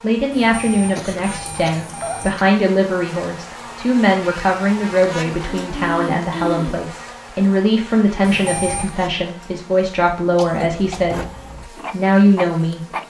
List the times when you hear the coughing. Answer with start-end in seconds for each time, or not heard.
0.9-2.4, 5.4-6.8, 10.3-11.2.